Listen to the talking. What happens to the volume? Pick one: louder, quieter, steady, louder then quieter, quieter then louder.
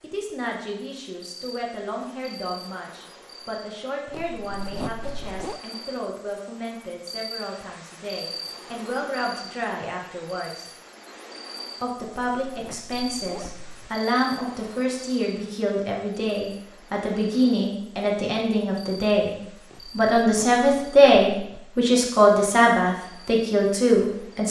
louder.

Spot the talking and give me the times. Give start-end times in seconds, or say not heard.
0.0-10.7, 11.8-19.4, 19.9-24.4.